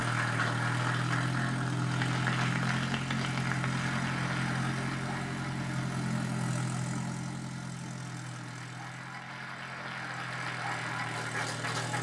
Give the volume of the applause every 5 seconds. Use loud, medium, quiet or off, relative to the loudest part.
loud, medium, loud.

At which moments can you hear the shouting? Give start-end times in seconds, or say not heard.
not heard.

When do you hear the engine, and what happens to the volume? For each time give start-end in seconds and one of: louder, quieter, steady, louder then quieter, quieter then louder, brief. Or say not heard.
0.0-11.9 quieter.